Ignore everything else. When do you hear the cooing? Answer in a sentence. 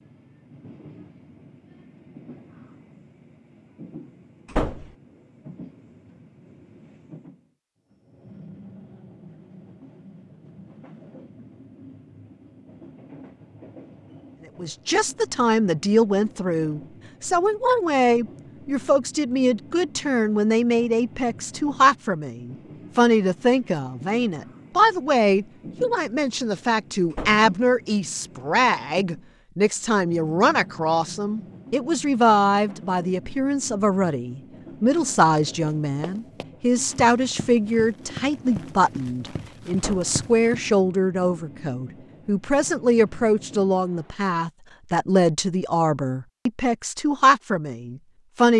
The cooing can't be heard in this clip.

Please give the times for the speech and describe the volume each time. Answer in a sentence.
You can hear the speech from 14.6 to 48.5 s, at a steady volume.